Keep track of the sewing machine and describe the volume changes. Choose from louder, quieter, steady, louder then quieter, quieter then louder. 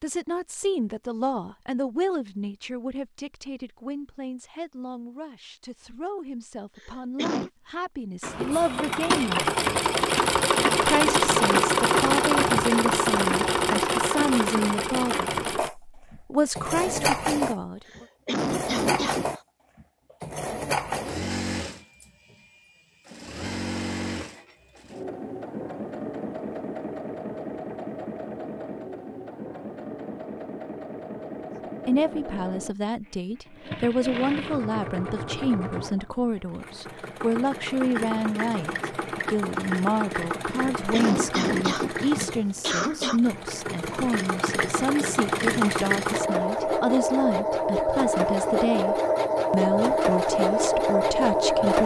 quieter then louder.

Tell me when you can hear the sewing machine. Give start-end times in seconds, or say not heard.
8.2-51.8.